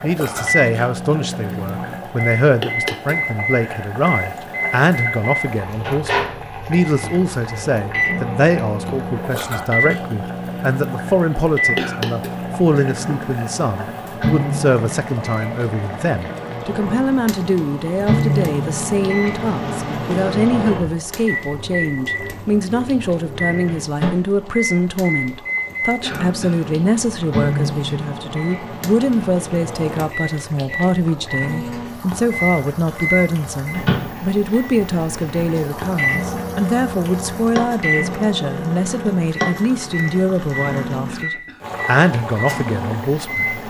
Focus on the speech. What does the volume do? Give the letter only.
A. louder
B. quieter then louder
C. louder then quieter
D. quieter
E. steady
E.